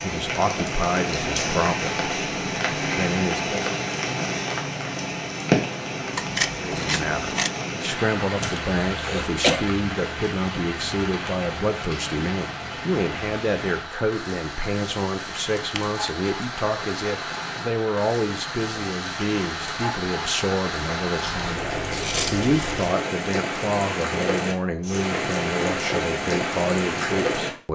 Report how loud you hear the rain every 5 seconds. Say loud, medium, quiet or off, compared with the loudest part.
loud, loud, medium, medium, loud, loud.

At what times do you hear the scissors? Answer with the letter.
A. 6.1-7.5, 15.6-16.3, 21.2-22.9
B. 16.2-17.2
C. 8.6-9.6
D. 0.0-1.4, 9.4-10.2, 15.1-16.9
A.